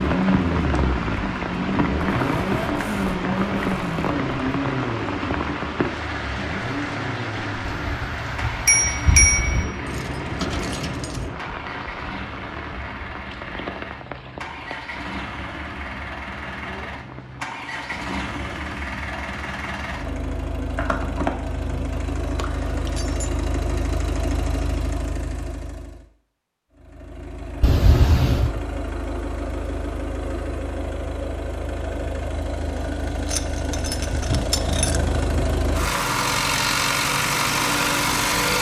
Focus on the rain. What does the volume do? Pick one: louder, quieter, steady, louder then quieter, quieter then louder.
quieter.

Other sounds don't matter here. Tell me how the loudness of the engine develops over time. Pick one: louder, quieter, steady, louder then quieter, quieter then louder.
quieter then louder.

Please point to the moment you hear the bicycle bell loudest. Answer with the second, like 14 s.
9 s.